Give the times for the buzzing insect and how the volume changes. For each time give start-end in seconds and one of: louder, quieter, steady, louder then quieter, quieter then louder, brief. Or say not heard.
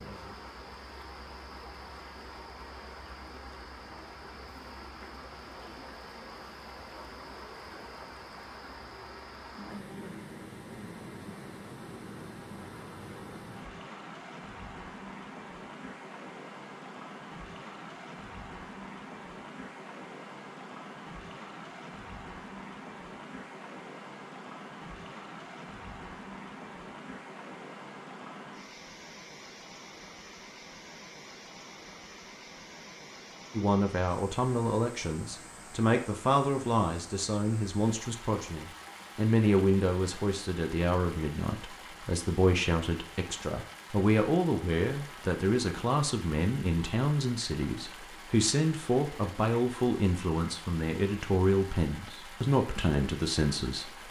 not heard.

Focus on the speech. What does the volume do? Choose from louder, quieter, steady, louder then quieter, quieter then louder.
steady.